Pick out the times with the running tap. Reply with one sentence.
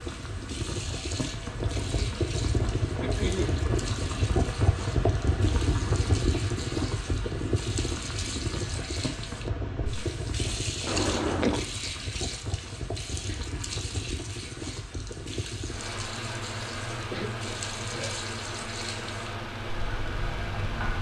You can hear the running tap from 0.0 to 20.9 s.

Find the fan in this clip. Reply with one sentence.
The fan can be heard from 0.0 to 20.9 s.